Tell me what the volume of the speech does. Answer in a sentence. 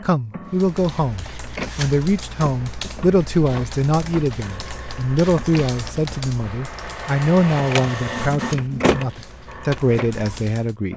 The volume of the speech stays about the same.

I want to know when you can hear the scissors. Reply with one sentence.
You can't hear the scissors here.